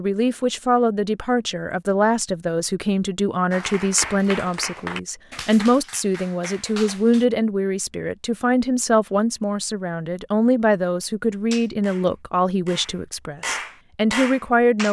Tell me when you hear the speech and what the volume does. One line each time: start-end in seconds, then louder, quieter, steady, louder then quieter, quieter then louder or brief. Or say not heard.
0.0-14.8 steady.